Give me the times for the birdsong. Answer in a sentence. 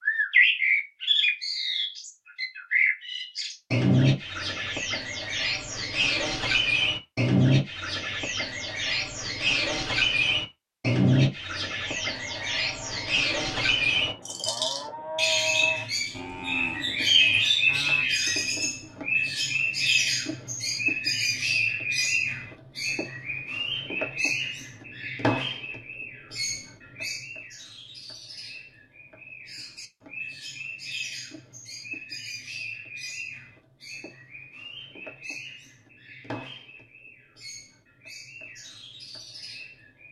You can hear the birdsong from 0.0 to 40.0 s.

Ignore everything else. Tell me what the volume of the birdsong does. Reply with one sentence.
The volume of the birdsong goes down.